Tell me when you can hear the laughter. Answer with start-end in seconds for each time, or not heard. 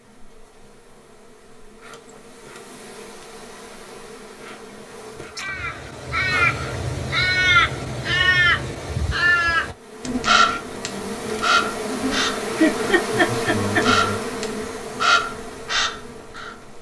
12.6-13.8.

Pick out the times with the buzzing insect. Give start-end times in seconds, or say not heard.
0.0-5.5, 9.7-16.7.